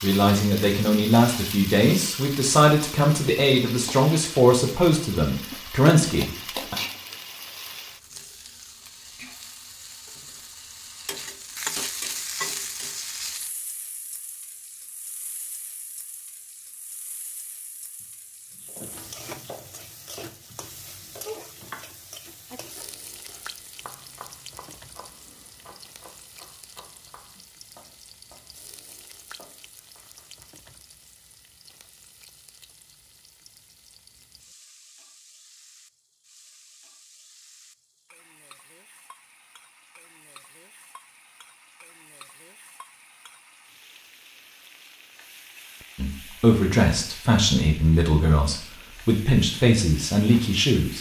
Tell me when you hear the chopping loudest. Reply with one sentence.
The loudest moment of the chopping is at 21 seconds.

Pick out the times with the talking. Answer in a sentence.
The talking can be heard from 0.0 to 6.8 s and from 46.0 to 50.9 s.